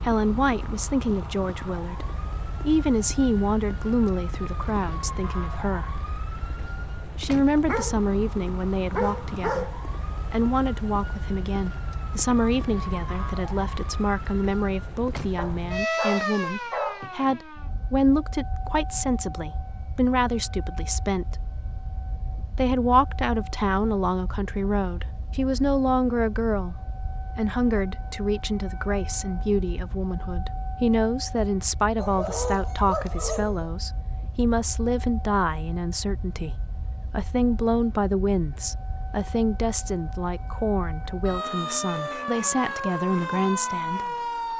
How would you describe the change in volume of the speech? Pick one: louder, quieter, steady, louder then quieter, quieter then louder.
steady.